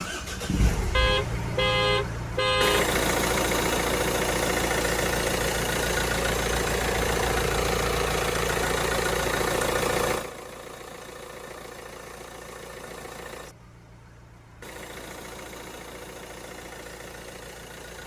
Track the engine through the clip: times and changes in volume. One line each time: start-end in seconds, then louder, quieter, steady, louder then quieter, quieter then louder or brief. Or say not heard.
0.0-18.0 quieter.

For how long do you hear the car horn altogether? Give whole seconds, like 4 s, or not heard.
2 s.